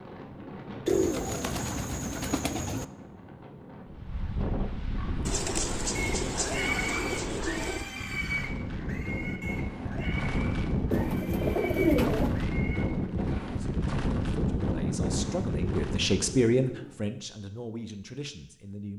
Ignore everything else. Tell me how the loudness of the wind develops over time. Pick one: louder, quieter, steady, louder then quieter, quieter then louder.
louder.